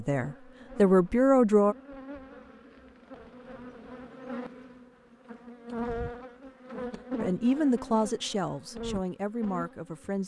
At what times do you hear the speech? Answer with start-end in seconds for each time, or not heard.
0.0-1.8, 7.2-10.2.